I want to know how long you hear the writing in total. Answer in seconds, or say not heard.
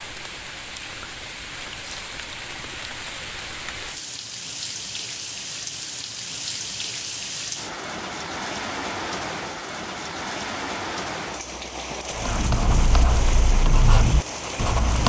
3 s.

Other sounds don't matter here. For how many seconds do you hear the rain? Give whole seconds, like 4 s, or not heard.
15 s.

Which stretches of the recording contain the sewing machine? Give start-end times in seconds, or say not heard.
not heard.